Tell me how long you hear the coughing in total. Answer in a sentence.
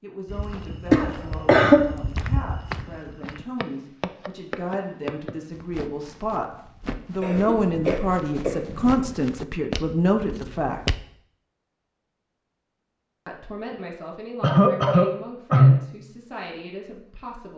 You can hear the coughing for 4 seconds altogether.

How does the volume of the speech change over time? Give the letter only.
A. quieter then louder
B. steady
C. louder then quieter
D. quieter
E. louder
C.